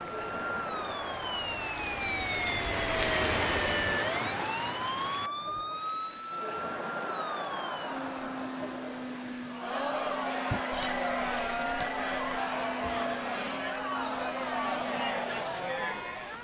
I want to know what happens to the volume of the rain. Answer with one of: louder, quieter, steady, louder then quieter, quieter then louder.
quieter.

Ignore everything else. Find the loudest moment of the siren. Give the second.
4 s.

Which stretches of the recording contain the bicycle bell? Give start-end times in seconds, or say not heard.
10.5-12.4.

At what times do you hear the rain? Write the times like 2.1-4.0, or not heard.
0.0-16.3.